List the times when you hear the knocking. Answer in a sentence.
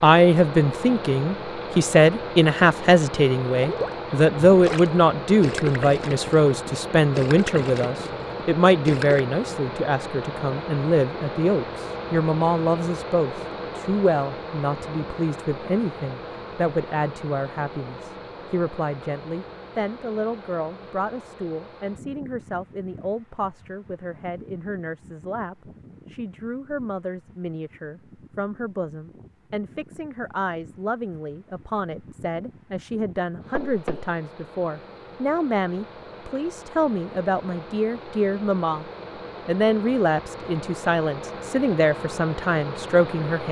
You can hear the knocking from 33.5 to 34.1 s.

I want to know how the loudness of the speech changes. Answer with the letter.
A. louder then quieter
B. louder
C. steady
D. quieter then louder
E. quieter
D.